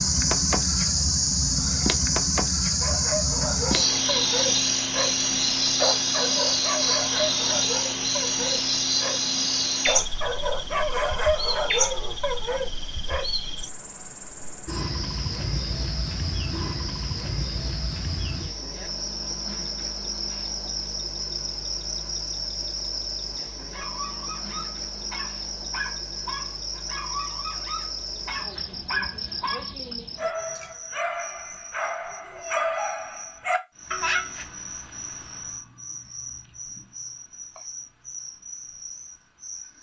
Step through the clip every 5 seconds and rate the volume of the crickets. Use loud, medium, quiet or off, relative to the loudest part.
loud, loud, medium, medium, medium, medium, quiet, quiet.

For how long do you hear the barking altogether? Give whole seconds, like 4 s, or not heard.
20 s.